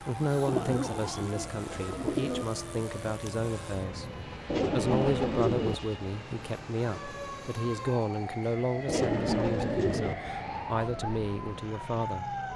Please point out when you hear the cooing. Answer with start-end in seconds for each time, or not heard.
0.5-2.5, 4.5-5.8, 8.8-10.2.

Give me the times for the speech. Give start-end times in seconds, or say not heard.
0.0-4.1, 4.7-12.3.